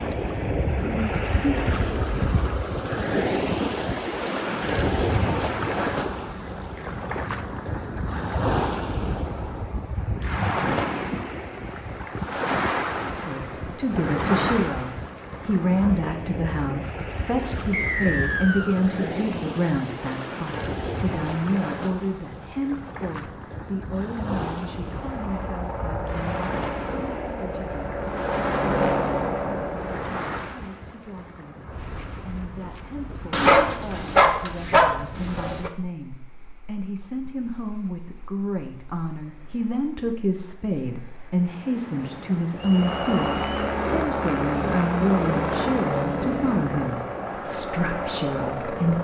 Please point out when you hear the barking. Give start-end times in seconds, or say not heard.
33.3-35.7.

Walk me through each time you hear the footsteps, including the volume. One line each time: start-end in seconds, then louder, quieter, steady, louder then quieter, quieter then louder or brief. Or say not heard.
not heard.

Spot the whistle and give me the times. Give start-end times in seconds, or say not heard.
17.7-18.8, 42.5-43.7.